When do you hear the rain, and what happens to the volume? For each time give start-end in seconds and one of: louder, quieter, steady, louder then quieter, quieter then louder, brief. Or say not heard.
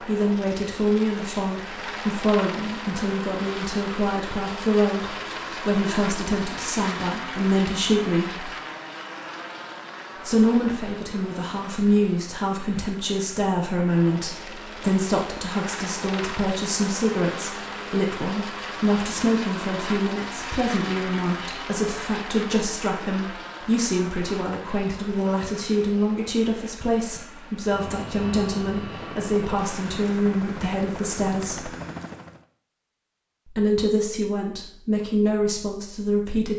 not heard.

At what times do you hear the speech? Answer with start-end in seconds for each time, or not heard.
0.0-8.5, 10.2-31.7, 33.5-36.5.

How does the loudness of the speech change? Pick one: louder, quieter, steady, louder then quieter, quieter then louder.
steady.